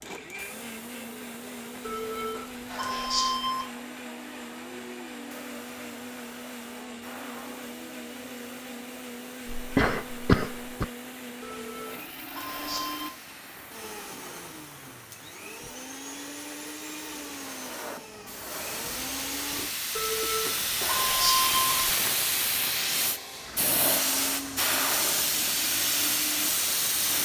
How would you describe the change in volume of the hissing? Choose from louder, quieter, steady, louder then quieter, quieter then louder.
louder.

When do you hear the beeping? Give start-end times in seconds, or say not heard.
1.9-3.7, 11.4-13.2, 19.9-21.9.